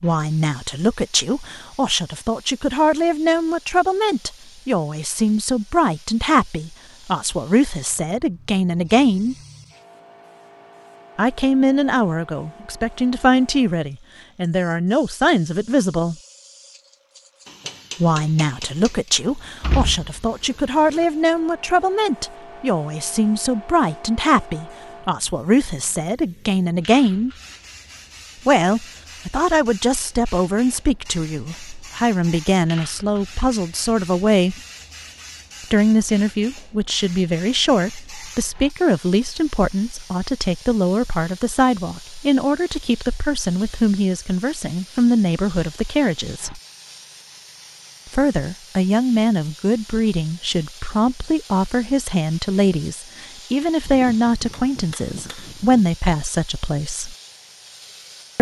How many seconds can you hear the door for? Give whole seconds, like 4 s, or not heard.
2 s.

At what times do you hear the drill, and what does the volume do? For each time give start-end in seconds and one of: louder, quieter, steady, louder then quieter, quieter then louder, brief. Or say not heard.
not heard.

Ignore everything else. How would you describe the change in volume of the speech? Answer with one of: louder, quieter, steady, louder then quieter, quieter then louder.
steady.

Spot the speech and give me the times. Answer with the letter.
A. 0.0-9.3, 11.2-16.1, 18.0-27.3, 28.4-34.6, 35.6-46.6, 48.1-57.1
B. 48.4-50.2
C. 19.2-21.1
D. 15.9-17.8
A.